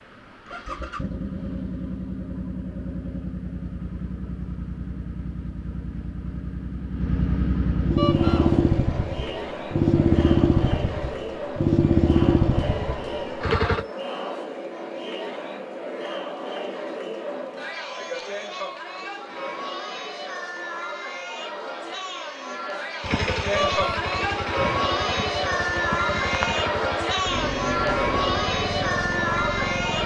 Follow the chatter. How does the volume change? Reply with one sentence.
The loudness of the chatter goes up.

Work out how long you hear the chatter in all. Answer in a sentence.
The chatter can be heard for 22 seconds in total.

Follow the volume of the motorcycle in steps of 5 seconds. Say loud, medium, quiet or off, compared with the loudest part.
medium, loud, loud, off, medium, medium.